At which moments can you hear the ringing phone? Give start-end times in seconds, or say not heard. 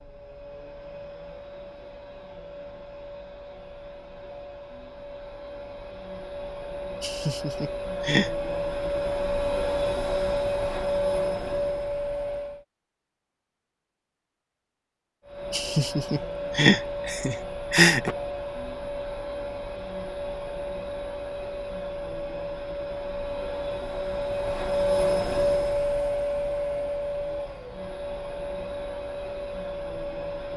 not heard.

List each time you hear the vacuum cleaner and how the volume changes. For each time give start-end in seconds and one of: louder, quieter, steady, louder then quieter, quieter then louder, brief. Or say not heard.
0.0-12.7 louder
15.2-30.5 louder then quieter.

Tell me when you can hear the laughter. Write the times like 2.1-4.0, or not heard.
7.0-8.3, 15.5-18.1.